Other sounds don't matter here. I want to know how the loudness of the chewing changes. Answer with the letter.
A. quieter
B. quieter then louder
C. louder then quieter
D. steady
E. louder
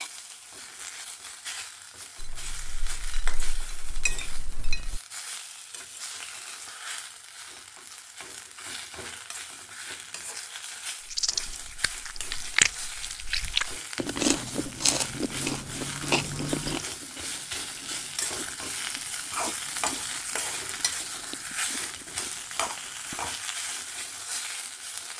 A.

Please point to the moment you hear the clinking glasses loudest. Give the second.
4 s.